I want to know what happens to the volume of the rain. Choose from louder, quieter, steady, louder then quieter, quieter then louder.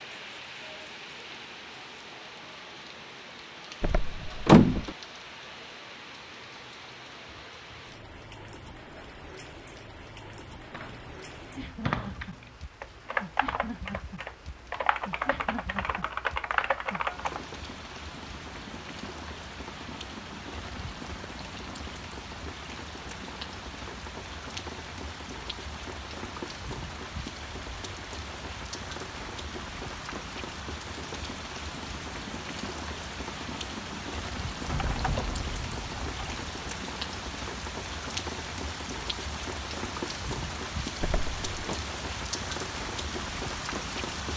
louder.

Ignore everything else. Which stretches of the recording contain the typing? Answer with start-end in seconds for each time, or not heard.
10.7-17.4, 34.6-36.5.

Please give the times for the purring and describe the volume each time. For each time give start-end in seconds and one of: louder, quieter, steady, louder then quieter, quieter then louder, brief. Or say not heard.
not heard.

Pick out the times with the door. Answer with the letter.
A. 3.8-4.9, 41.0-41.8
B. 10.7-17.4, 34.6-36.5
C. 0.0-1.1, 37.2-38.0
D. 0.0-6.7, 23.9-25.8
A.